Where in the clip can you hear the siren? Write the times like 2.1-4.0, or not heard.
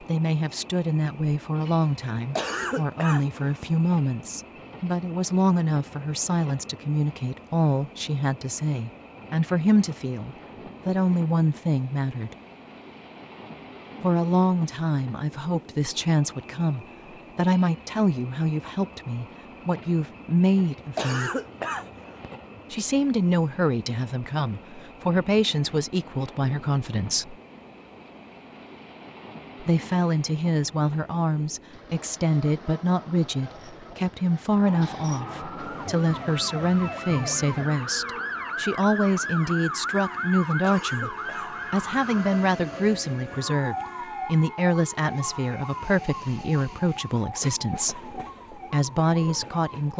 34.5-49.9.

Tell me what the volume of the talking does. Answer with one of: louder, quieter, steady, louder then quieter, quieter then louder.
steady.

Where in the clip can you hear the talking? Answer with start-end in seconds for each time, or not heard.
0.0-12.3, 14.0-21.3, 22.7-27.4, 29.6-49.9.